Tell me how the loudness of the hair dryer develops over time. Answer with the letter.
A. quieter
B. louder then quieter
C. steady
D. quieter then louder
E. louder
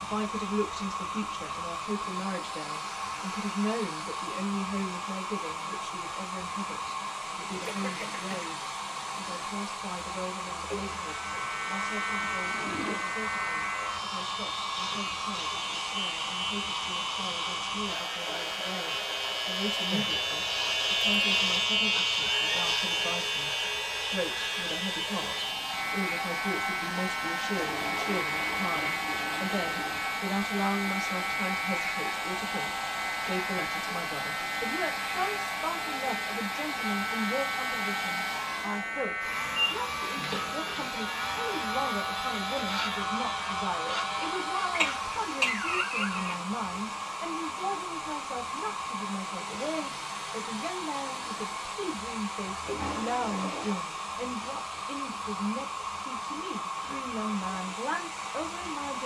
C.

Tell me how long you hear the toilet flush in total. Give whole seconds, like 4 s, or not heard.
5 s.